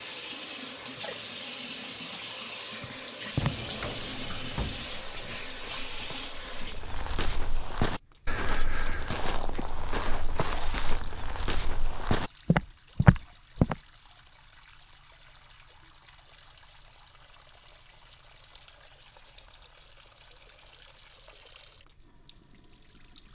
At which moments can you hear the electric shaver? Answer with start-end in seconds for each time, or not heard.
not heard.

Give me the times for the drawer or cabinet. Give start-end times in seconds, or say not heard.
3.4-5.4.